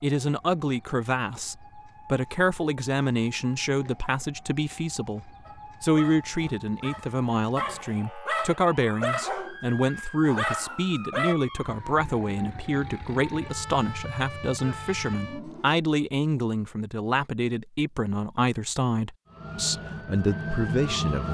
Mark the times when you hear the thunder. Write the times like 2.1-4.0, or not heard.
not heard.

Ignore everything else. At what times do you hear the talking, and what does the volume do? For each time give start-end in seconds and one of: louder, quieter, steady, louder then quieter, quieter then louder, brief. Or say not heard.
0.0-21.2 steady.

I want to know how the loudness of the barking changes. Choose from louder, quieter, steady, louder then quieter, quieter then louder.
louder.